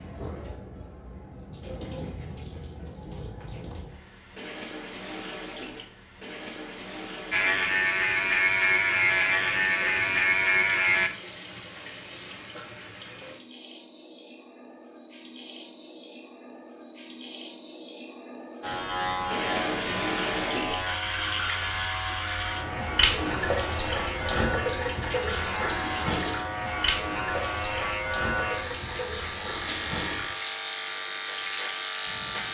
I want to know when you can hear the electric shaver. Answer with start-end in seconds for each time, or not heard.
7.3-11.1, 18.6-32.4.